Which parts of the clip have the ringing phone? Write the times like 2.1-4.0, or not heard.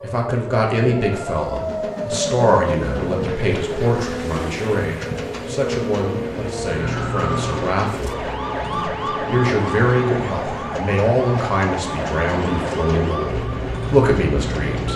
not heard.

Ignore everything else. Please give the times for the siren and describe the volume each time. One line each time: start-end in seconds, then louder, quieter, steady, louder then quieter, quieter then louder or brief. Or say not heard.
0.0-14.9 steady.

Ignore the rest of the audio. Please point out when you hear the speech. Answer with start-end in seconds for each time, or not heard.
0.0-14.9.